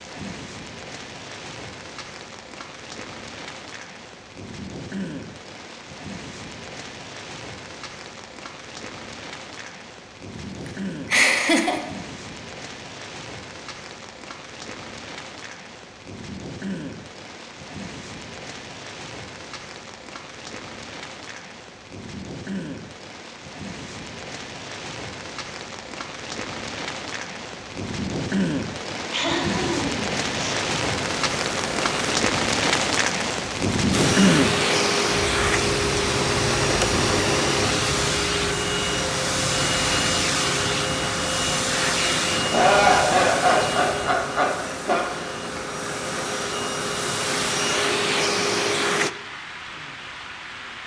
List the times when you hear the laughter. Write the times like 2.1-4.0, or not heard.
10.3-11.8, 29.1-30.6, 42.4-45.0.